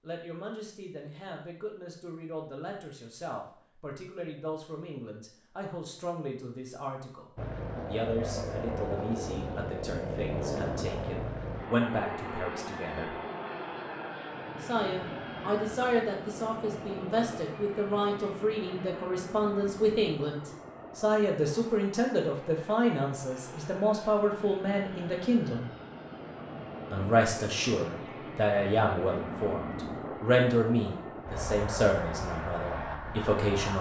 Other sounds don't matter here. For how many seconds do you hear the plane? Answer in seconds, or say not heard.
26 s.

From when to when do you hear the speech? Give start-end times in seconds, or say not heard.
0.0-13.2, 14.6-25.7, 26.9-33.7.